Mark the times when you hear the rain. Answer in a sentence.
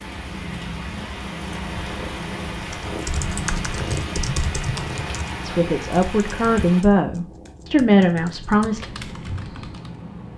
You can hear the rain from 0.0 to 6.8 s.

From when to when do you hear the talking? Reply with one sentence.
The talking can be heard from 5.4 to 8.8 s.